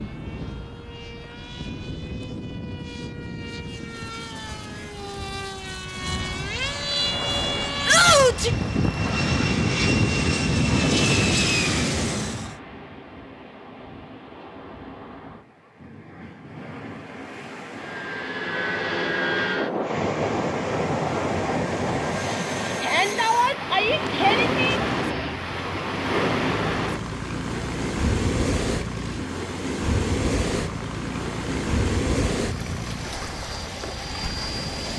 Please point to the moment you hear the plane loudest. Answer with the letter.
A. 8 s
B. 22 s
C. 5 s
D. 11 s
D.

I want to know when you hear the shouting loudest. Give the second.
8 s.